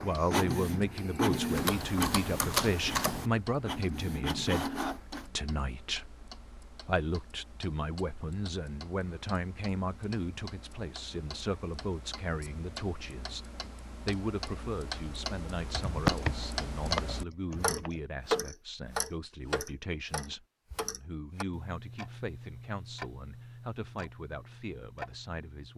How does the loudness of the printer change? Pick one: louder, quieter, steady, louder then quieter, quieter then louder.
quieter then louder.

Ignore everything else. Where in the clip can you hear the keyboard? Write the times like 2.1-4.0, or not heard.
1.6-3.3, 15.8-18.0.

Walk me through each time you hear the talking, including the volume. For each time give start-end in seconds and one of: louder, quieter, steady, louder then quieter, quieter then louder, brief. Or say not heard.
0.0-25.7 quieter.